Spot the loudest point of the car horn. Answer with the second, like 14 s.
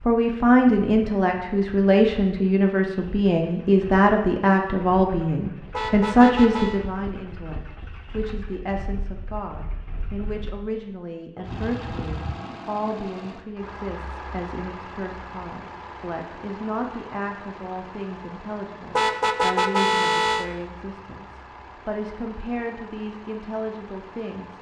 20 s.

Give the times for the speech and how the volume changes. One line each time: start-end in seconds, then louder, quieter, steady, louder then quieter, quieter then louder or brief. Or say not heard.
0.0-24.5 quieter.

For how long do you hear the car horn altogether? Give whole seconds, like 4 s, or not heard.
3 s.